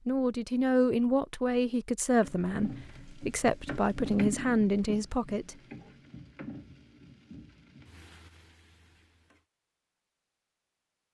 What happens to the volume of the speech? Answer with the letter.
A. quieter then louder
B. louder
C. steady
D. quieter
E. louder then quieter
A.